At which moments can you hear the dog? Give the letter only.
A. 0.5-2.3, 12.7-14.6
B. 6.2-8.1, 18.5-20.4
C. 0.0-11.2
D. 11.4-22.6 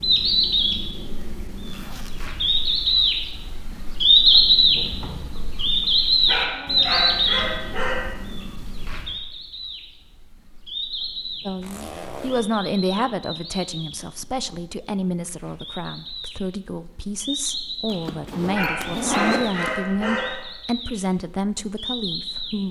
B.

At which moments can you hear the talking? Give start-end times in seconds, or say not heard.
11.4-22.6.